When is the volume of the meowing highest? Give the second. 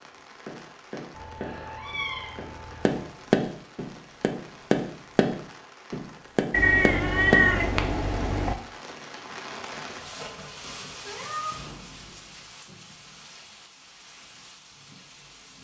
7 s.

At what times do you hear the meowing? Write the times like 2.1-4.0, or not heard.
1.1-3.0, 6.5-8.6, 10.6-11.6.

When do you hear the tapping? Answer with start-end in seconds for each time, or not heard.
0.5-7.9.